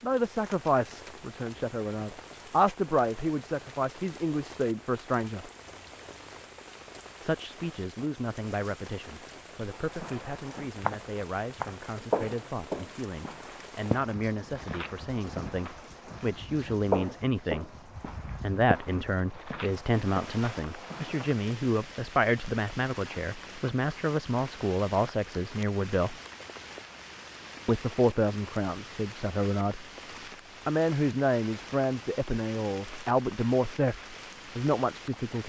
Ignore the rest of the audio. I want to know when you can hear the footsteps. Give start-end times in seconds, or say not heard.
9.8-21.3.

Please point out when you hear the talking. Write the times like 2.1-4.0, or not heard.
0.0-5.5, 7.2-17.7, 18.4-26.1, 27.6-29.9, 30.6-35.4.